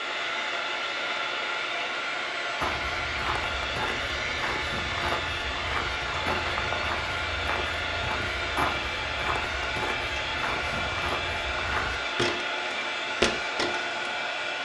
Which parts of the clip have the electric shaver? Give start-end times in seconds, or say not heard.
not heard.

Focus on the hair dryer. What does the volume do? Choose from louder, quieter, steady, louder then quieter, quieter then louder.
steady.